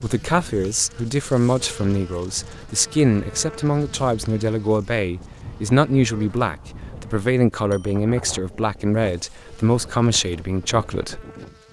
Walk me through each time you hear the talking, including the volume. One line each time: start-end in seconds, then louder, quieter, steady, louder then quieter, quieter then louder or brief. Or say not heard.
0.0-11.2 steady.